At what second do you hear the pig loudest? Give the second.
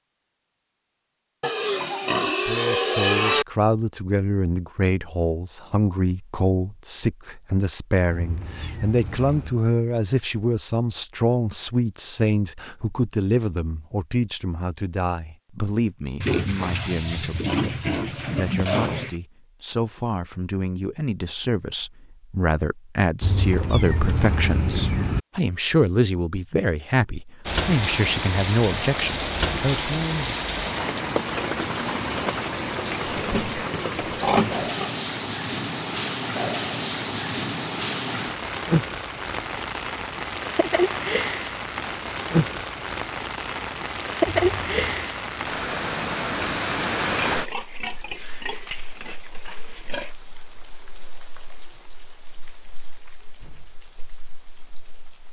3 s.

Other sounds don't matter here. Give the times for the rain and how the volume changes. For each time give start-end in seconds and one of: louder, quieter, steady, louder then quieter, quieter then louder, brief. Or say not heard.
27.4-55.2 quieter.